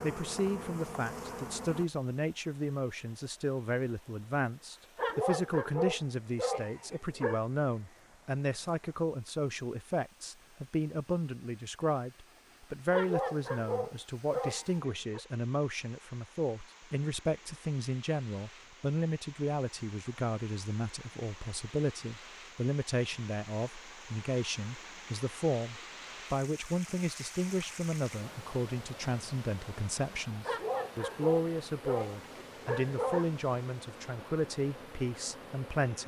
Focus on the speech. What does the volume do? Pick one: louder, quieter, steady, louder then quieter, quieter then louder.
steady.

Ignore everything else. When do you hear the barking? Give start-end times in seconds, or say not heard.
5.0-7.4, 12.9-15.2, 30.4-33.3.